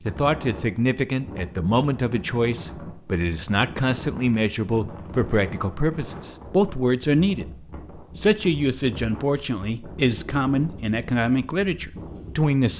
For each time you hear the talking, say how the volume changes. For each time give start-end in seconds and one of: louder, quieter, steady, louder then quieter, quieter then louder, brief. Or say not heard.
0.0-12.7 steady.